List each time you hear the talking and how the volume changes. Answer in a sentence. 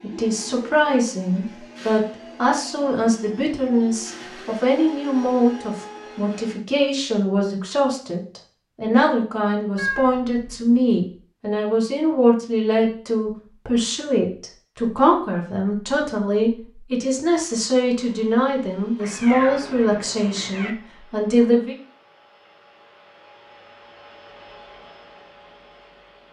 You can hear the talking from 0.0 to 21.8 s, at a steady volume.